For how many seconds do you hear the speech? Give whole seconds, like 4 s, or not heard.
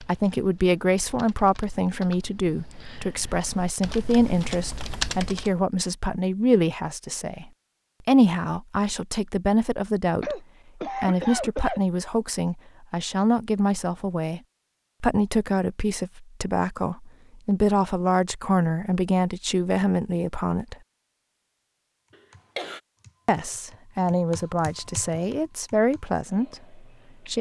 24 s.